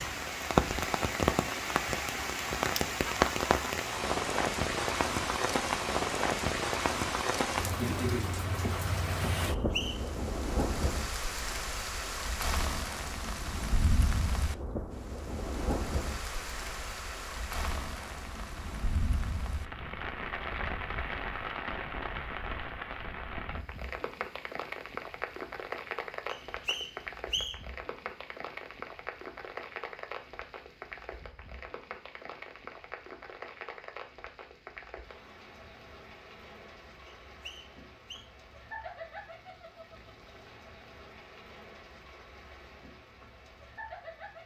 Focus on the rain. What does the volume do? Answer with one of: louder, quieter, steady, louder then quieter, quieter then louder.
quieter.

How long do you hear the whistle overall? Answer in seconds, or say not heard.
3 s.